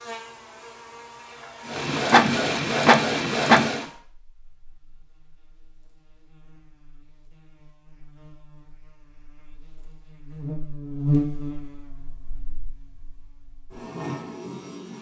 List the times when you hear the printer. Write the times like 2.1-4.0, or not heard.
1.7-3.9.